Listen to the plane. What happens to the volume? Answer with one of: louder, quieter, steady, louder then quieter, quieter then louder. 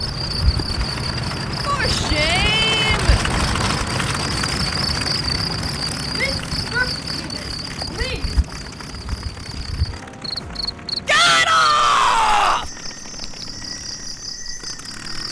quieter.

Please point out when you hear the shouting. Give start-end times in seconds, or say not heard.
1.6-3.2, 6.2-8.4, 11.1-12.7.